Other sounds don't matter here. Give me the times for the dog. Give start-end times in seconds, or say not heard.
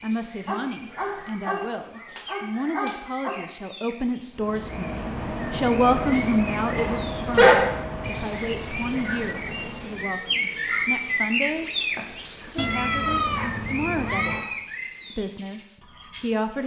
0.5-3.4, 6.8-8.2, 11.9-14.6.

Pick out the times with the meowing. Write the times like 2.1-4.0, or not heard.
12.6-14.5.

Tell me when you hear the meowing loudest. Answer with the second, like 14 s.
13 s.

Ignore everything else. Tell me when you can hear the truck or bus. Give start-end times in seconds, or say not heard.
4.3-10.2.